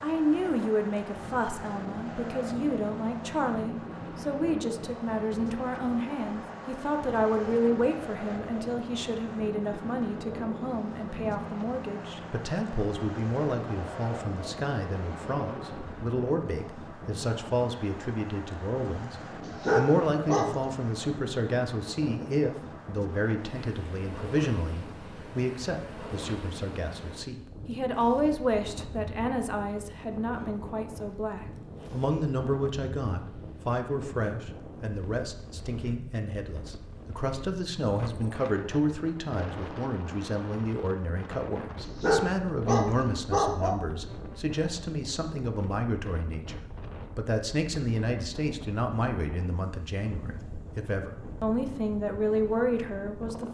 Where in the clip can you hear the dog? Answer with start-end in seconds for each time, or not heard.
19.4-20.9, 41.8-43.8.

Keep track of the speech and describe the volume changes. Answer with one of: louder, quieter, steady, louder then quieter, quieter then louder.
steady.